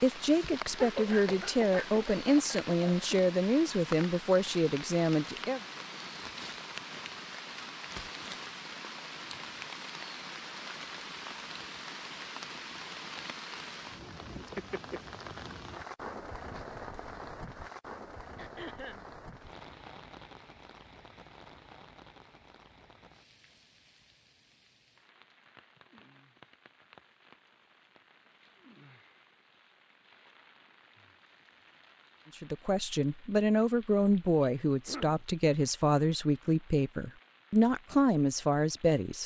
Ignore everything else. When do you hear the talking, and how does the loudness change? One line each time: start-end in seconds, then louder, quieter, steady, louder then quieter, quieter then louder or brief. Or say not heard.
0.0-5.6 steady
32.4-39.2 steady.